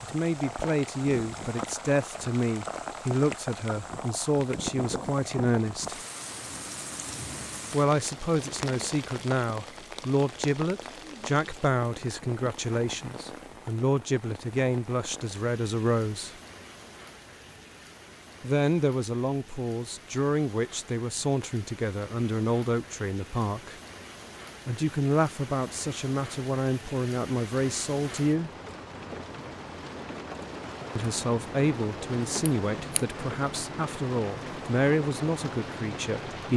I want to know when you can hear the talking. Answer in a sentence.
The talking can be heard from 0.0 to 6.0 s, from 7.7 to 16.4 s, from 18.4 to 23.8 s, from 24.6 to 28.5 s and from 30.9 to 36.5 s.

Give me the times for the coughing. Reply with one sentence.
The coughing can't be heard in this clip.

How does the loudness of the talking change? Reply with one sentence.
The volume of the talking stays about the same.